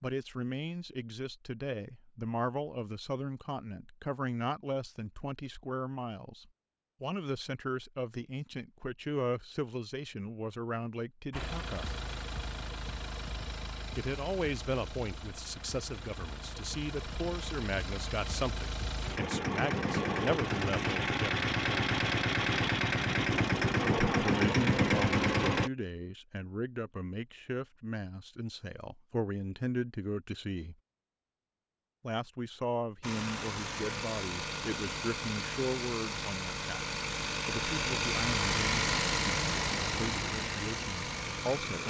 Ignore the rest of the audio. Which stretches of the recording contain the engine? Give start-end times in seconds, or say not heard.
11.3-25.7, 33.0-41.8.